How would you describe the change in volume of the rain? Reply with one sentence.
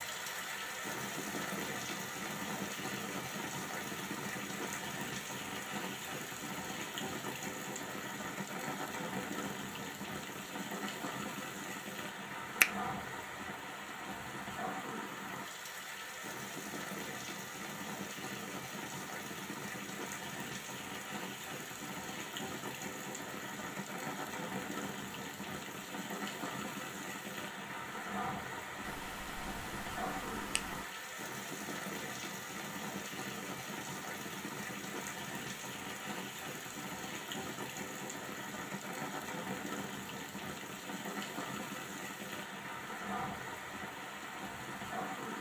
The volume of the rain stays about the same.